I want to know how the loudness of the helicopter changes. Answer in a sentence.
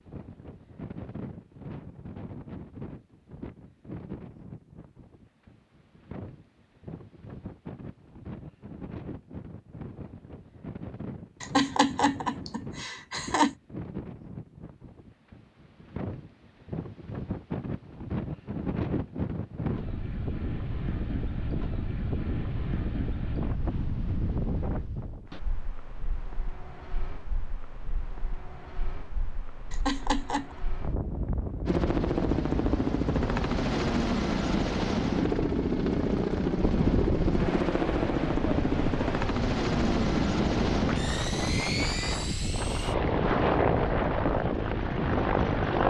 The volume of the helicopter stays about the same.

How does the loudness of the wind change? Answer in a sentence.
The loudness of the wind goes up.